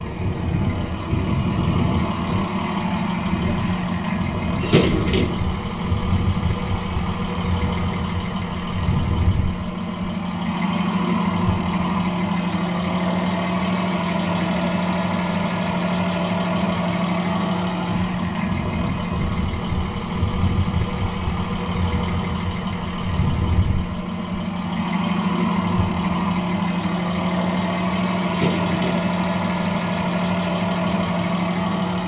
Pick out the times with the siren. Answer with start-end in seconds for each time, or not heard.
not heard.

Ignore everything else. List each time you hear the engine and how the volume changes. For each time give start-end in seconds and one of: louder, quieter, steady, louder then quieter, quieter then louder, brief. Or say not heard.
0.0-32.0 steady.